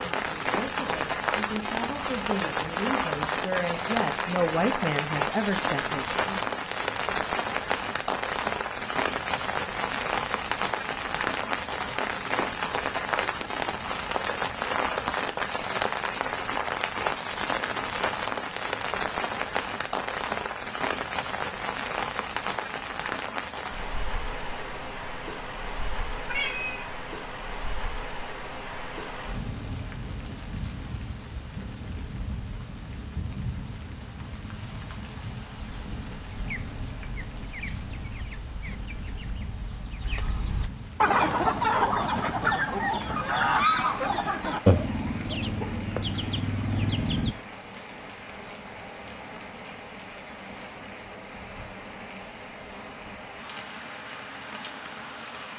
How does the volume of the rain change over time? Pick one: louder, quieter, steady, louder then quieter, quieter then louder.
quieter.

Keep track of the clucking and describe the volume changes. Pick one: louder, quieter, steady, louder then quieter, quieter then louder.
louder then quieter.